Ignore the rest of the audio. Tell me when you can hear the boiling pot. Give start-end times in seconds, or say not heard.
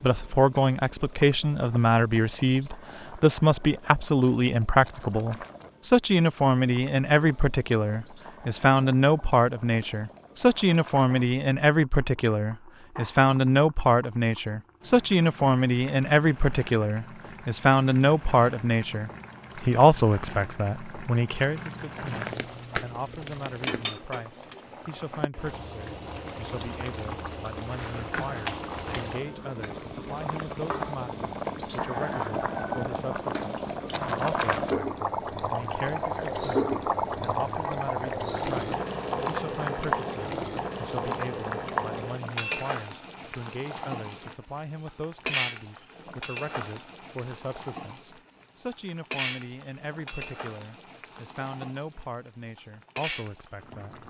0.0-54.0.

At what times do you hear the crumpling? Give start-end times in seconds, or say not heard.
22.1-23.9.